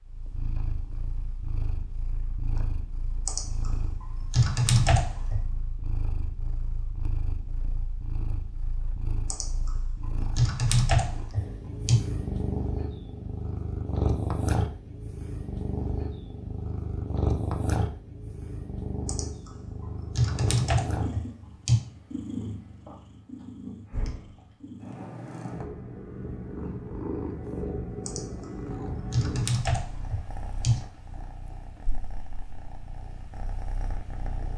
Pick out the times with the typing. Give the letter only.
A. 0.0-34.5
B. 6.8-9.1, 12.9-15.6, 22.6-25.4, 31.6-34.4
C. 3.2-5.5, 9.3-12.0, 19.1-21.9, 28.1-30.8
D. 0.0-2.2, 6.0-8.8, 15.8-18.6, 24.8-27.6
C.